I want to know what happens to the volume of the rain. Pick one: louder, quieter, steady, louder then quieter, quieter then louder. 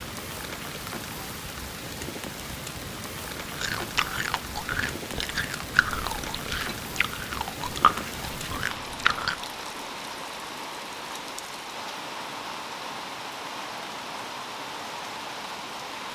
steady.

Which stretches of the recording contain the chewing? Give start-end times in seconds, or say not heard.
3.5-9.4.